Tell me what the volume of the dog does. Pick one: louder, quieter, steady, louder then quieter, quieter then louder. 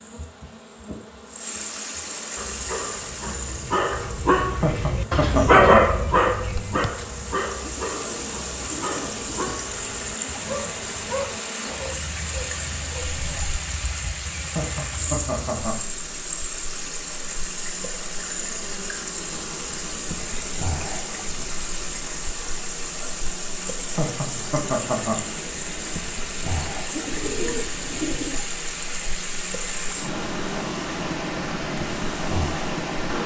louder then quieter.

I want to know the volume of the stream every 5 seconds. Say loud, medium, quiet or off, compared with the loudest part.
medium, medium, loud, loud, loud, loud, loud.